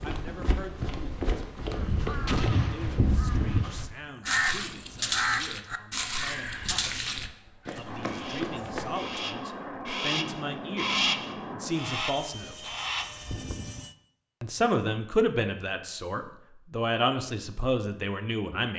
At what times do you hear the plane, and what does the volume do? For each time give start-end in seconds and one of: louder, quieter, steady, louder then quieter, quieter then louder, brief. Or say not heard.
7.8-13.9 steady.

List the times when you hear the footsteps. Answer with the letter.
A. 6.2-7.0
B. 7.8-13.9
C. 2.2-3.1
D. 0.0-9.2
D.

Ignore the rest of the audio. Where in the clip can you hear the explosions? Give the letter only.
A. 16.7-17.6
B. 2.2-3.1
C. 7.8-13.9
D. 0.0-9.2
B.